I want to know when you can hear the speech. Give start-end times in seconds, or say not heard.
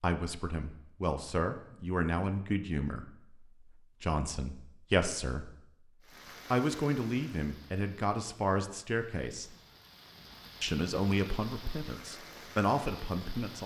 0.0-5.5, 6.5-9.6, 10.6-13.6.